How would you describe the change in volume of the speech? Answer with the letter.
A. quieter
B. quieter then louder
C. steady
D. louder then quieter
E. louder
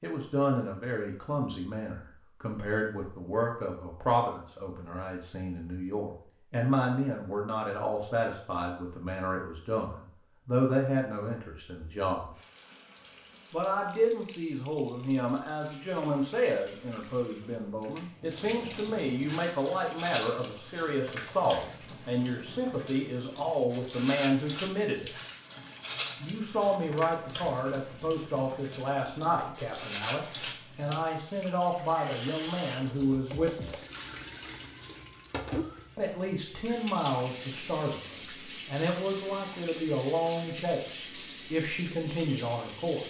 C.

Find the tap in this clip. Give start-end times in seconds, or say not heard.
12.3-43.0.